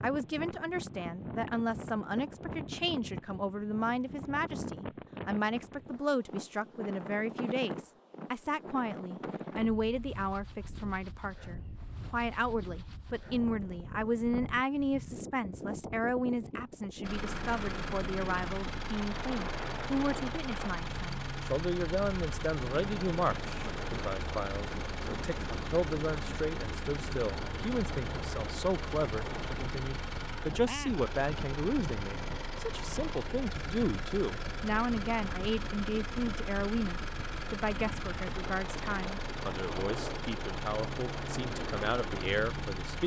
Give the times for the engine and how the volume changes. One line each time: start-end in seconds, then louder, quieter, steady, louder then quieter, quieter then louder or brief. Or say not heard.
17.0-43.0 steady.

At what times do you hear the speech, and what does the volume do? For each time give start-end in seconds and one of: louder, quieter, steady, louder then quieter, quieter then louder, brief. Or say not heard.
0.0-43.0 steady.